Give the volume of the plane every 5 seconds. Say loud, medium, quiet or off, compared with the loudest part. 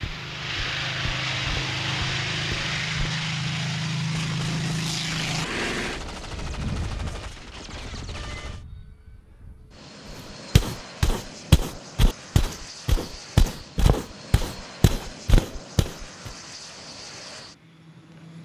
loud, medium, quiet, quiet.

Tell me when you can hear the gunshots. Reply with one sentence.
You can hear the gunshots from 4.1 to 8.7 s.